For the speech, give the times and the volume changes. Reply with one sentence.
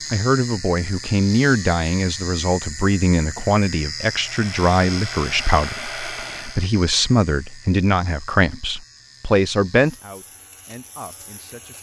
You can hear the speech from 0.1 to 11.7 s, at a steady volume.